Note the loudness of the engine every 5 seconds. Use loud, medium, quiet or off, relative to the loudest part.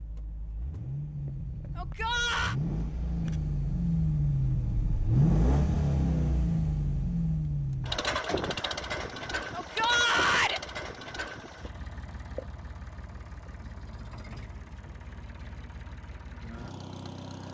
loud, loud, quiet, quiet.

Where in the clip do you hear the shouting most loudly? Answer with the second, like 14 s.
10 s.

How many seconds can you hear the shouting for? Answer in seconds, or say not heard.
2 s.